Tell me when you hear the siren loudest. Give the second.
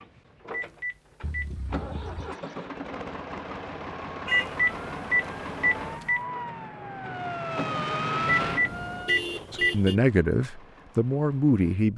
8 s.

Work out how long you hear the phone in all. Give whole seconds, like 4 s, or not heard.
4 s.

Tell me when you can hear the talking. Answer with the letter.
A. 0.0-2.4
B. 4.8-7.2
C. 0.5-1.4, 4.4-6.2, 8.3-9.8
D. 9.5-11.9
D.